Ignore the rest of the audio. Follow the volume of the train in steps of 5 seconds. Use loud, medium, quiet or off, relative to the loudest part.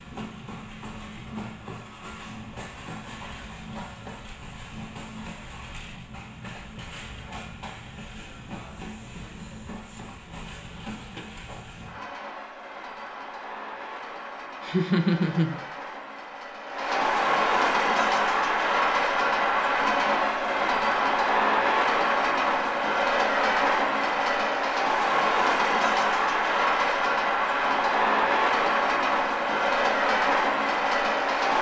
quiet, quiet, quiet, loud, loud, loud, loud.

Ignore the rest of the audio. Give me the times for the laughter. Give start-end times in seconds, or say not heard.
14.6-15.6.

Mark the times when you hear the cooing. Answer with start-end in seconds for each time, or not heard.
not heard.